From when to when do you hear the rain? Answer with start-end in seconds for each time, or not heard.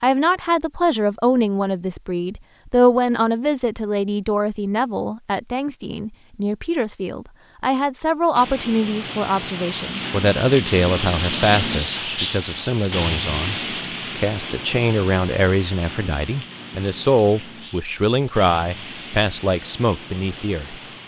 8.3-21.0.